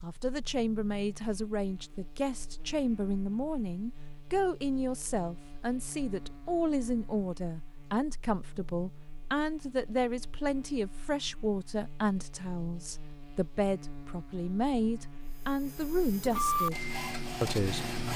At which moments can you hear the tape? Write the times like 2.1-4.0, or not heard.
not heard.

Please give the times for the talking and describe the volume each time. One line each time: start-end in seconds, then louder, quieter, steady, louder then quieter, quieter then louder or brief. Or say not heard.
0.0-17.9 steady.